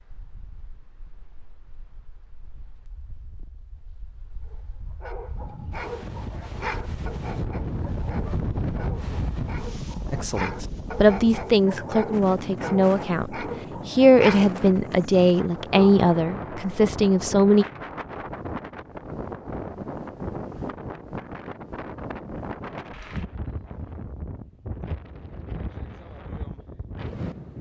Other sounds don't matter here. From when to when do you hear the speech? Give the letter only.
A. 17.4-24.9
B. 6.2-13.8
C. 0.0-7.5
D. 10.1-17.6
D.